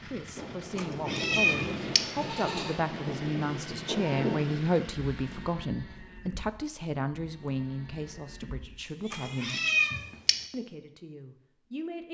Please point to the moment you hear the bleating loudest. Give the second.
4 s.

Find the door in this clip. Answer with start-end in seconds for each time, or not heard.
not heard.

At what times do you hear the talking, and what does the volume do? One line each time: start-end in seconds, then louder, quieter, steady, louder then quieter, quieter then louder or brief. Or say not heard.
0.0-9.7 louder then quieter
10.5-12.1 brief.